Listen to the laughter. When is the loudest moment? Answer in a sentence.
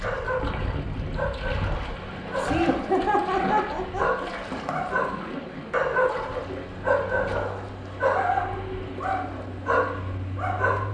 The volume of the laughter peaks at 3 seconds.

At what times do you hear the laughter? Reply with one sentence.
You can hear the laughter from 2.4 to 4.8 s.